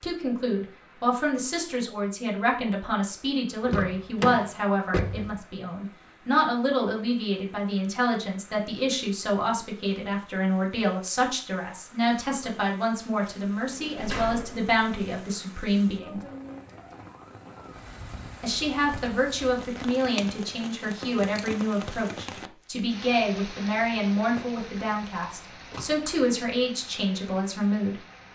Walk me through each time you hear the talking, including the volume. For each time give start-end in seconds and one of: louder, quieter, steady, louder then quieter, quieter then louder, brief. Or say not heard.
0.0-16.2 steady
18.4-27.9 steady.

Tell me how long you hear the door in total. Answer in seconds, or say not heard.
5 s.